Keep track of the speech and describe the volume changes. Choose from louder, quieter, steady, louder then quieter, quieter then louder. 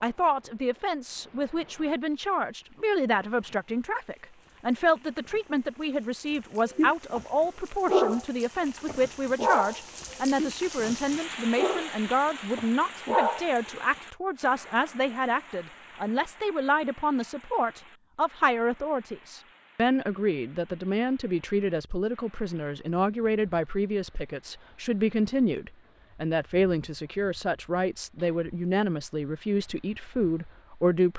steady.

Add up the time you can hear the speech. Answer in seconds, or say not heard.
31 s.